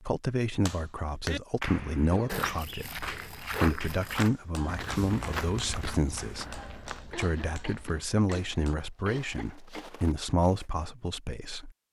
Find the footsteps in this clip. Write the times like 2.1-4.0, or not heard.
2.2-10.7.